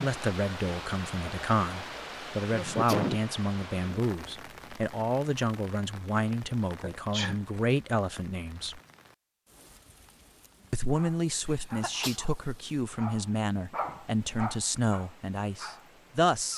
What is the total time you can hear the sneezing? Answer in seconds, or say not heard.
2 s.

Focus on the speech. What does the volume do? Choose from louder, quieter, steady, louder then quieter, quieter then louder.
steady.